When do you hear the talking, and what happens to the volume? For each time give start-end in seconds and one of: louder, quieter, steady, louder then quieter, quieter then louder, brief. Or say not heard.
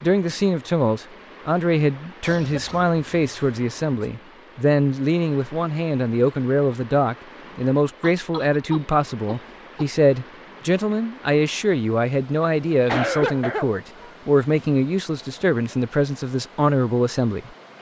0.0-17.5 steady.